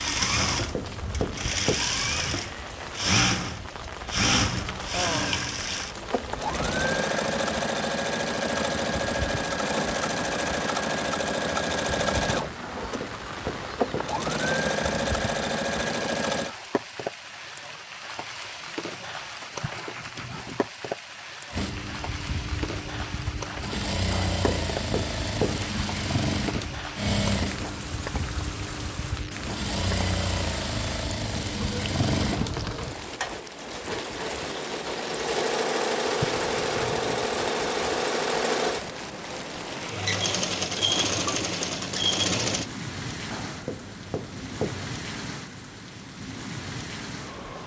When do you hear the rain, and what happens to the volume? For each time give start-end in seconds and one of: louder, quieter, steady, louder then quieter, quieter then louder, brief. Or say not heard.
0.0-47.6 steady.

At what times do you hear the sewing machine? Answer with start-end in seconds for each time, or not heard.
0.0-16.6, 21.5-42.7.